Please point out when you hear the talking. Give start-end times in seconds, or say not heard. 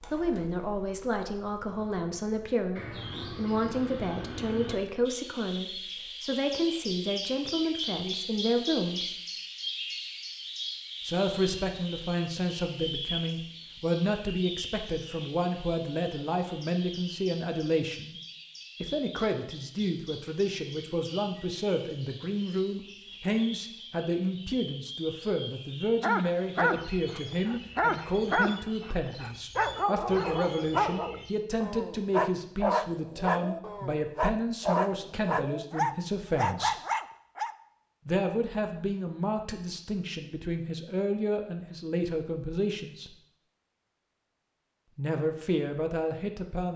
0.1-9.2, 11.1-18.1, 18.8-36.8, 38.0-43.1, 45.0-46.7.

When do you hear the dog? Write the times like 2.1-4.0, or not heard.
26.0-37.5.